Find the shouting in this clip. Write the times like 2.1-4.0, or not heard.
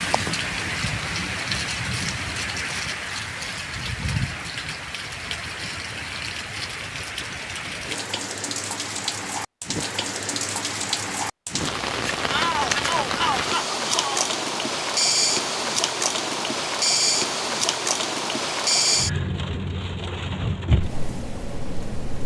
12.3-14.2.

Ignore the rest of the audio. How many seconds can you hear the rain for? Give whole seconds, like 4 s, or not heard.
22 s.